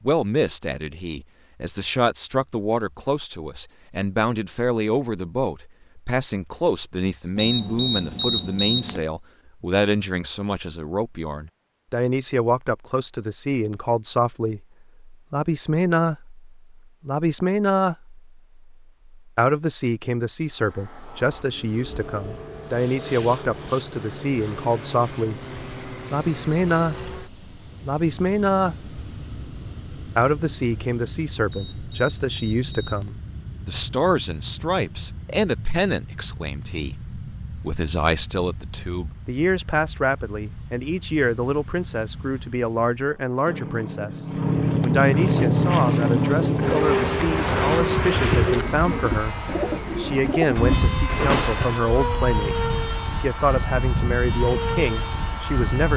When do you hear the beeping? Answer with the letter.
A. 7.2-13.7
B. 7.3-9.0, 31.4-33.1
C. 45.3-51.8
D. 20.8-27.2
B.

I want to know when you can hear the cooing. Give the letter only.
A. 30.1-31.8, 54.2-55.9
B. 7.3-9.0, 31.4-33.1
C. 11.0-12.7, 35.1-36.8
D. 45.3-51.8
D.